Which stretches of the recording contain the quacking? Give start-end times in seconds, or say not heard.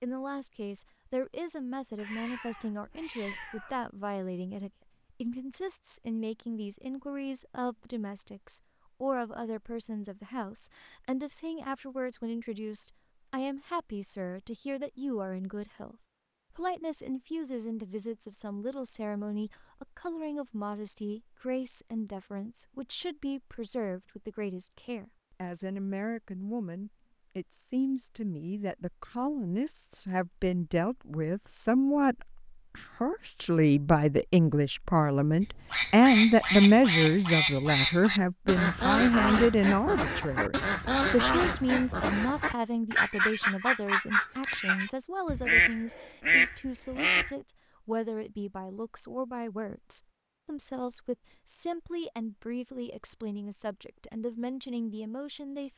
35.4-47.3.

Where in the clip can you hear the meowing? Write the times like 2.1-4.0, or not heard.
1.9-3.9.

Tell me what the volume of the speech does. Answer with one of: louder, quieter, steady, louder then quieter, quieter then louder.
louder then quieter.